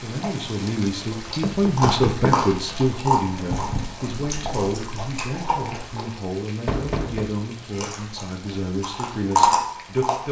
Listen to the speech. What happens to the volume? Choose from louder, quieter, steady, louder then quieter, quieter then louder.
quieter.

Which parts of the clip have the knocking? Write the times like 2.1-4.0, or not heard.
1.2-2.5, 6.7-7.3.